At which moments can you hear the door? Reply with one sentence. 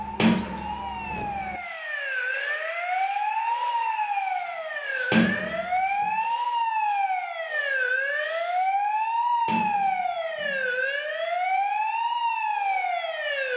You can hear the door from 0.1 to 1.2 s, from 5.1 to 6.1 s and from 9.4 to 10.7 s.